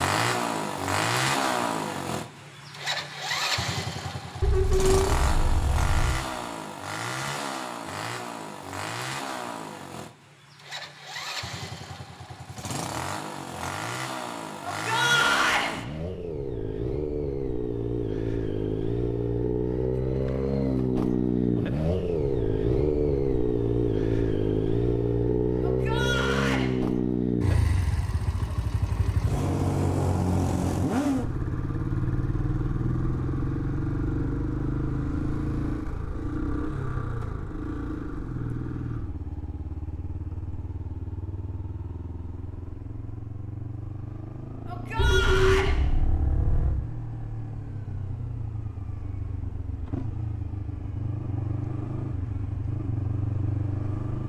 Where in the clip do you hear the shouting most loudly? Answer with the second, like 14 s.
15 s.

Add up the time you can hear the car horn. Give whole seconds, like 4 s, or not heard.
4 s.